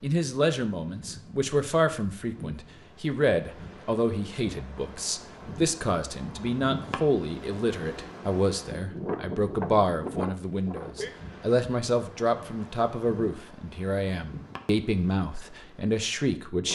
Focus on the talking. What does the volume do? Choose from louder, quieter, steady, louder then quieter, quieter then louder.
steady.